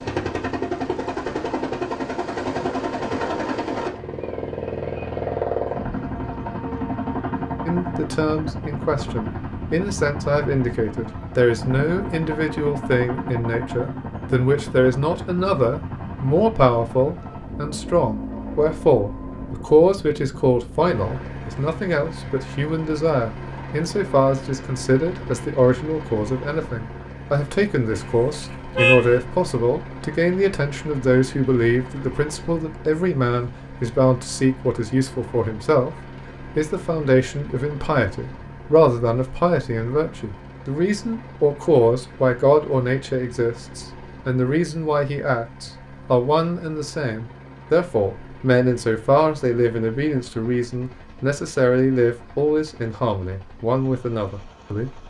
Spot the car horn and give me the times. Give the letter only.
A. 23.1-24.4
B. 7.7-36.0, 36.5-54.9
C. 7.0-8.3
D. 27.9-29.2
D.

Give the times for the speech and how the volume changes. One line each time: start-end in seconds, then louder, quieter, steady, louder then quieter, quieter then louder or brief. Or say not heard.
7.7-36.0 steady
36.5-54.9 steady.